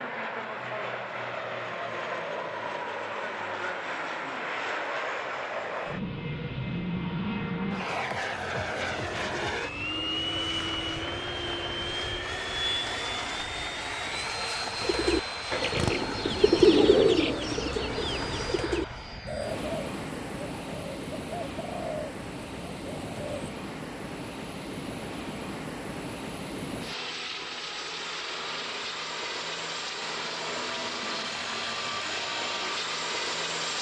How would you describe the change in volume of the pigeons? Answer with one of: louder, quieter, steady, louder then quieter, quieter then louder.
quieter.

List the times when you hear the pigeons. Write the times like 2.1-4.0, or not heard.
14.8-23.5.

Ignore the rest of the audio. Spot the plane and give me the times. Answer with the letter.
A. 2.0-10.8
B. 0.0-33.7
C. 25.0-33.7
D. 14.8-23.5
B.